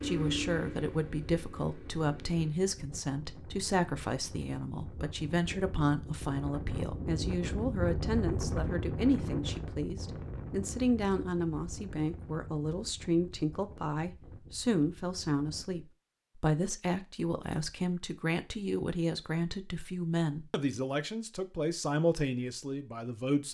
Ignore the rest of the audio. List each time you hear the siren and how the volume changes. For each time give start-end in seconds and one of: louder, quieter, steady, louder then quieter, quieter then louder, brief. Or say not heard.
not heard.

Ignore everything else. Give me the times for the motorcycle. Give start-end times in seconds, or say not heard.
0.0-2.5.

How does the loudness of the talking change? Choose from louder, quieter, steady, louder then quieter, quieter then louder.
steady.